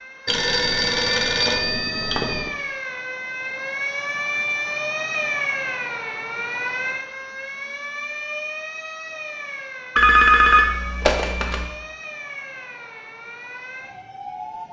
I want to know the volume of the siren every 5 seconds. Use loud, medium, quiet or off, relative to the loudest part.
loud, loud, medium.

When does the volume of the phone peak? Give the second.
10 s.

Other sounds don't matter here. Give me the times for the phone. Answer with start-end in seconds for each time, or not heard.
0.2-2.5, 9.9-11.7.